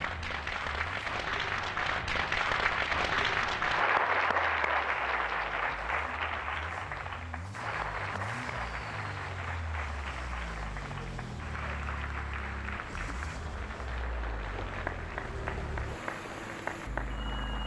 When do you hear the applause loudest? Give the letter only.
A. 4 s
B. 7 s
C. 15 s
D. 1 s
A.